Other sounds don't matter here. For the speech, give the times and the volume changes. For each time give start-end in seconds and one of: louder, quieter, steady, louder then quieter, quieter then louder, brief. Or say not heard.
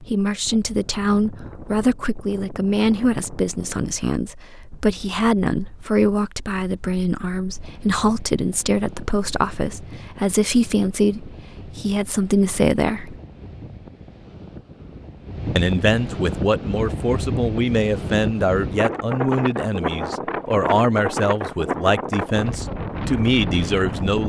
0.0-13.2 steady
15.6-24.2 steady.